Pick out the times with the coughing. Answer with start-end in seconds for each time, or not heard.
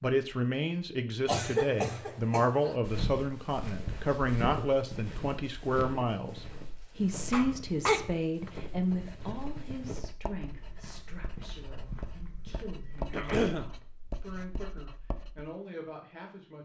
1.2-2.8, 7.3-8.5, 13.1-13.7.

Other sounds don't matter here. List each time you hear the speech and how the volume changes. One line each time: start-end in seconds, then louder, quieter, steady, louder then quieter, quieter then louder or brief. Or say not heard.
0.0-16.5 quieter.